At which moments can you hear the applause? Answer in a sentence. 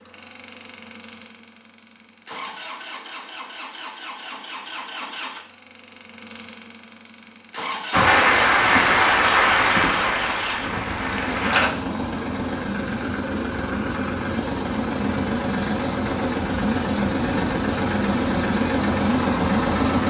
You can hear the applause from 7.9 to 11.7 s.